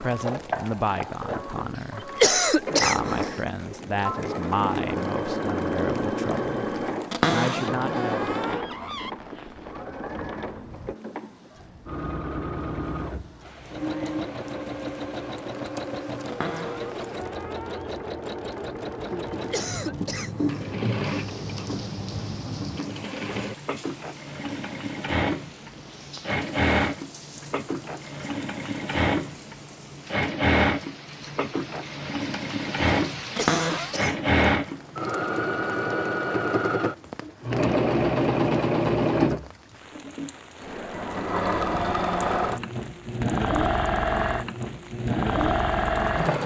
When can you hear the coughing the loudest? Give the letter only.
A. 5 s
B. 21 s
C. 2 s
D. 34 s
C.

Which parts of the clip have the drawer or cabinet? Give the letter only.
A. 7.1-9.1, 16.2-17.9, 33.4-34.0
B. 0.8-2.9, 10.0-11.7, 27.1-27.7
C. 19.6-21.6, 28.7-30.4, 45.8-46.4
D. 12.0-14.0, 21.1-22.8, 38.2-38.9
A.